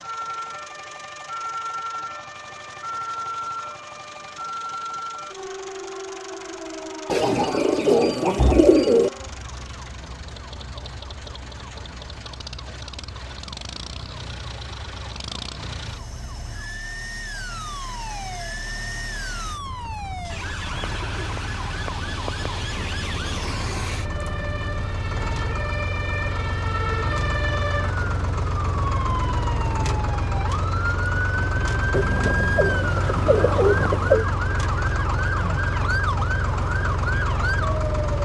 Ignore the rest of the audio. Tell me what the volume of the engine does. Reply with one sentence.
The volume of the engine goes up.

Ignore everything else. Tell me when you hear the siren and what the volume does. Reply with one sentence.
You can hear the siren from 0.0 to 38.2 s, getting quieter then louder.